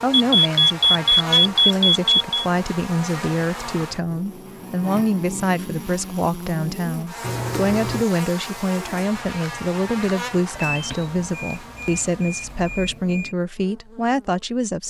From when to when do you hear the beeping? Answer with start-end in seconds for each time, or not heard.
0.1-2.5, 7.2-8.1, 10.6-13.3.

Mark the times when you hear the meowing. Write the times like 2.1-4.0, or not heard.
not heard.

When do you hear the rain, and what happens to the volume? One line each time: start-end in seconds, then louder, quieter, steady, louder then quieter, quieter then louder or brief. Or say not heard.
not heard.